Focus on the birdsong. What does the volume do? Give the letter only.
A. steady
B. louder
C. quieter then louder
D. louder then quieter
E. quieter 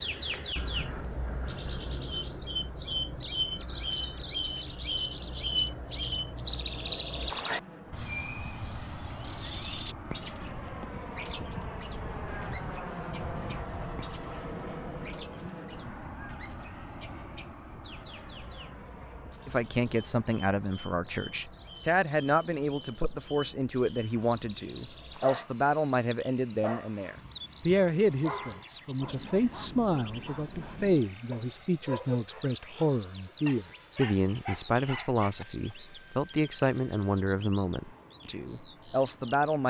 E.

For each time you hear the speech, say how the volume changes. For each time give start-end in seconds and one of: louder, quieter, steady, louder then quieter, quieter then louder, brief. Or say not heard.
19.4-39.6 steady.